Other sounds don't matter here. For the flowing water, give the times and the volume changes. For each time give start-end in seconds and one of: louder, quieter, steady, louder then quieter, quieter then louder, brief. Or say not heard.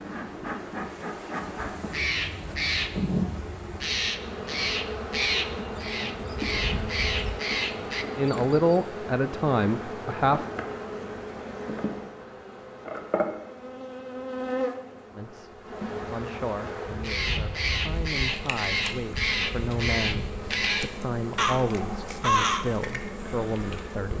not heard.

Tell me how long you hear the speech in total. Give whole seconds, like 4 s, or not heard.
11 s.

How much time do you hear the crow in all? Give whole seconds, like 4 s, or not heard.
12 s.